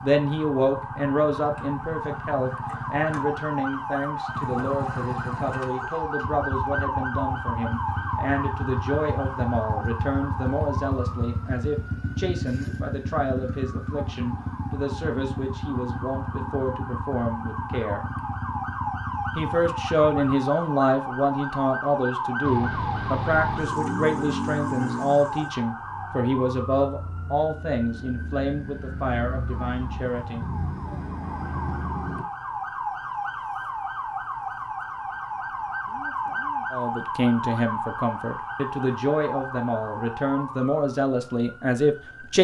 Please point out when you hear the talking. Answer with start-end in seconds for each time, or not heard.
0.0-18.1, 19.4-30.9, 36.7-42.3.